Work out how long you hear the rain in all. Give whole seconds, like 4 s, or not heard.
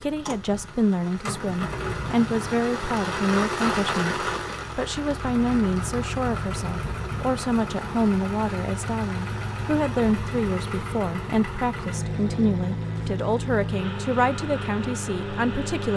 11 s.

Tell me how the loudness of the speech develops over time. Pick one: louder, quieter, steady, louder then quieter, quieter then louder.
steady.